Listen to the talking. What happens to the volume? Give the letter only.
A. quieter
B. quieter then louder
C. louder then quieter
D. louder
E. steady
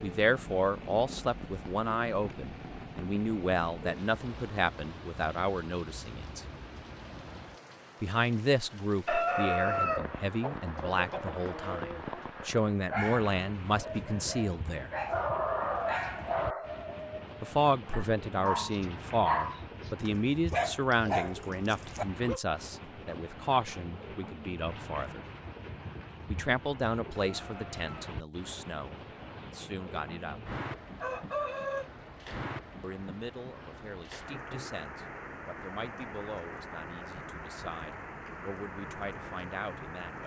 A.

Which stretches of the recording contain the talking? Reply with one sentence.
You can hear the talking from 0.0 to 6.5 s, from 8.0 to 14.9 s, from 17.4 to 25.2 s, from 26.2 to 30.4 s and from 32.8 to 40.2 s.